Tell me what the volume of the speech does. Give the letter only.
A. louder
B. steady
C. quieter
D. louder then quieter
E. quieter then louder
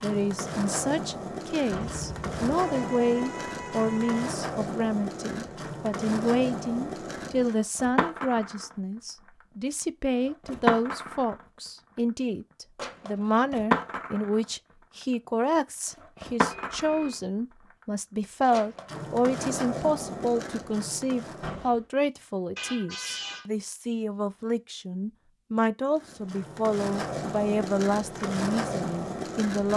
B.